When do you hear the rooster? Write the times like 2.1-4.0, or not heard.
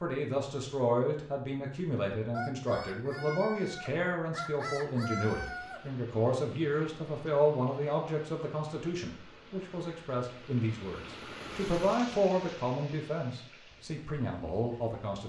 2.3-5.8.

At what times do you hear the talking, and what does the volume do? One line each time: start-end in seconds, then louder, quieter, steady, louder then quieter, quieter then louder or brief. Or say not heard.
0.0-15.2 steady.